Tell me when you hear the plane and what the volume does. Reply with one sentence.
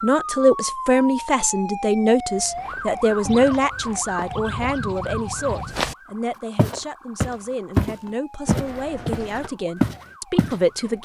You can't hear the plane here.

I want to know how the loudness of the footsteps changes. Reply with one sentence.
The loudness of the footsteps goes up.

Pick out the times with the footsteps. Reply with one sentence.
You can hear the footsteps from 2.3 to 6.0 s and from 6.5 to 10.6 s.